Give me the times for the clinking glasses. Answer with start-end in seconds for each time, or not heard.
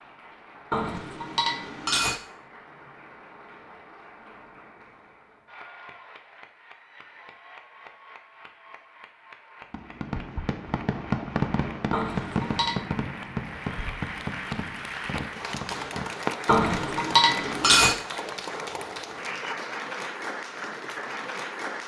0.7-2.1, 11.9-12.8, 16.4-17.9.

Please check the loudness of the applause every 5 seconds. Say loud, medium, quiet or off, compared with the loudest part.
quiet, quiet, medium, loud, loud.